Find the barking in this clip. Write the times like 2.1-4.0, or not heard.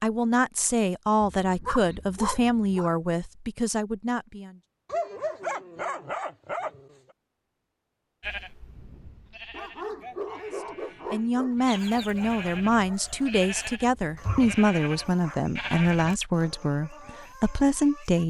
1.2-2.9, 4.8-7.0, 9.5-11.6, 14.2-15.6.